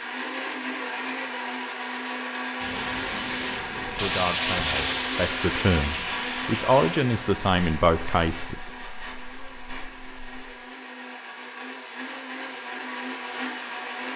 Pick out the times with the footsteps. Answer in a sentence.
The footsteps can't be heard in this clip.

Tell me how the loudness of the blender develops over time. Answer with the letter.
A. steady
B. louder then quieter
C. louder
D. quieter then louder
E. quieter
D.